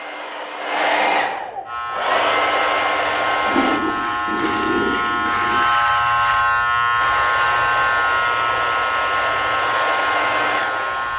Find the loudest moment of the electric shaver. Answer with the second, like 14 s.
6 s.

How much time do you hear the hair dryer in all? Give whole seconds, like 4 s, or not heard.
8 s.